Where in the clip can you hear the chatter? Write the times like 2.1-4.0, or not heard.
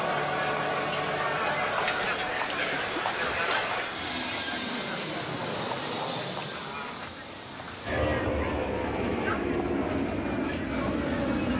0.0-11.5.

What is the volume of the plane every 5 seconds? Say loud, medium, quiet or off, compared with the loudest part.
medium, loud, loud.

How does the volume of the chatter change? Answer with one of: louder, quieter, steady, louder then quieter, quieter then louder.
quieter.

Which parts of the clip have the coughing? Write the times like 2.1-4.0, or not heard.
2.7-3.5.